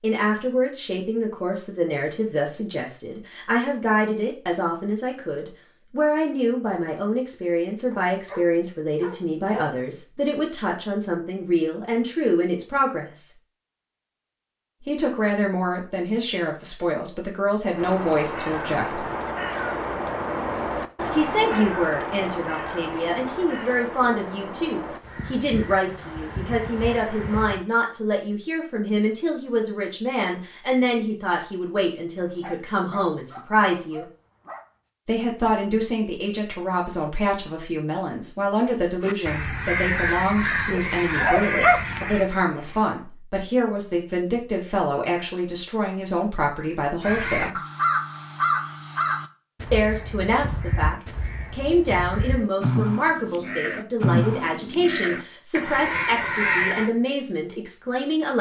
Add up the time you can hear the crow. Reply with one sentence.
You can hear the crow for 24 seconds altogether.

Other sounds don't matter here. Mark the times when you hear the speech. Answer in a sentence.
The speech can be heard from 0.0 to 13.3 s, from 14.8 to 19.1 s, from 21.1 to 34.0 s, from 35.0 to 47.6 s and from 49.7 to 58.3 s.